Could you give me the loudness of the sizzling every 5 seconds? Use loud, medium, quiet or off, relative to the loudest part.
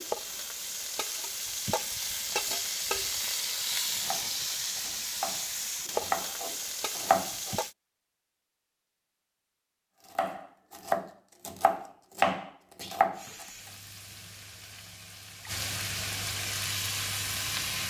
loud, loud, quiet, loud.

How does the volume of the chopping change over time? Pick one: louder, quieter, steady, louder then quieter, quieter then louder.
louder.